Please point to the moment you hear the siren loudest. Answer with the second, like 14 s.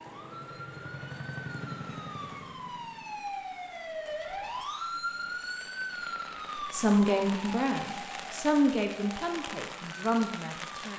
5 s.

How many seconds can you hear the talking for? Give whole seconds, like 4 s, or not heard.
4 s.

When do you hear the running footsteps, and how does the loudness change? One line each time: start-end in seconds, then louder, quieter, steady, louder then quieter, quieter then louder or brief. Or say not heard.
not heard.